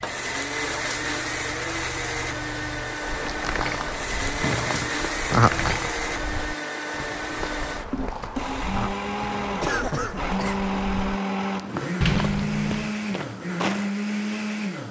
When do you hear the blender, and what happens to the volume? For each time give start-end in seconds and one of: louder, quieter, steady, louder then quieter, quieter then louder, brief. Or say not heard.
0.0-14.8 steady.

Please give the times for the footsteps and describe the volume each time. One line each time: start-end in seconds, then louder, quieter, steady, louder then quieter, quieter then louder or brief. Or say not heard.
3.0-13.9 steady.